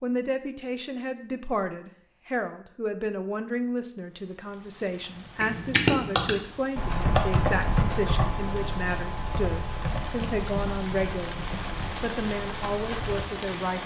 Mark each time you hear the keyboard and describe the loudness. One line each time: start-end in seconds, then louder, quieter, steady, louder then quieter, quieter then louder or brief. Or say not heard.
5.4-13.2 quieter.